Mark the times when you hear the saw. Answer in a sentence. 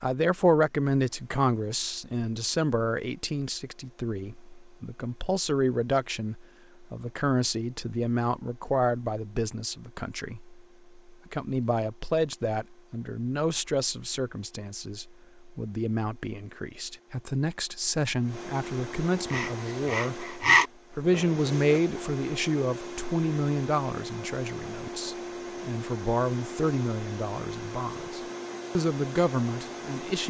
The saw can be heard from 19.2 to 21.6 s.